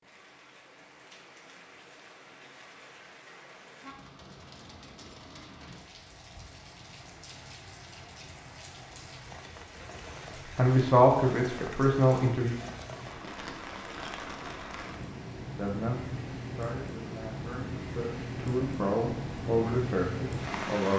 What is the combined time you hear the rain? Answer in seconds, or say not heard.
21 s.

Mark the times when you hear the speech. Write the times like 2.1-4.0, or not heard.
10.6-12.6, 15.6-20.9.